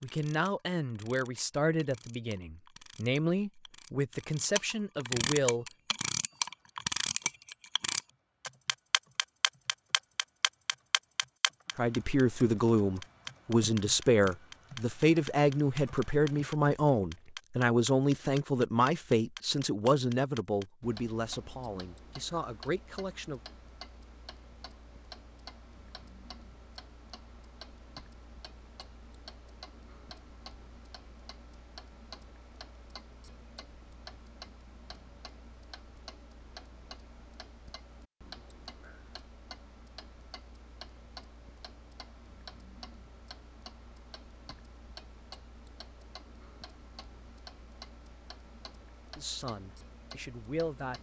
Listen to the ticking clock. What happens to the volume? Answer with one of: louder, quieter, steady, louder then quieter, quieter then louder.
quieter.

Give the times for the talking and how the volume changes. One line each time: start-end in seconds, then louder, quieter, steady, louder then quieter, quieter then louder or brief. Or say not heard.
0.0-5.7 steady
11.8-23.4 quieter
49.1-50.9 brief.